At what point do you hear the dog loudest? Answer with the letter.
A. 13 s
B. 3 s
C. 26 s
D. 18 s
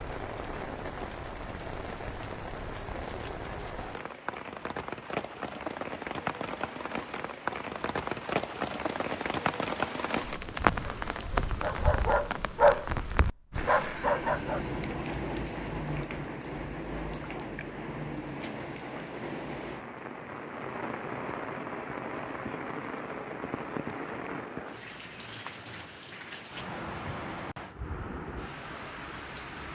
A.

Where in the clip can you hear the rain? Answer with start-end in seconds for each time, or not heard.
0.0-29.7.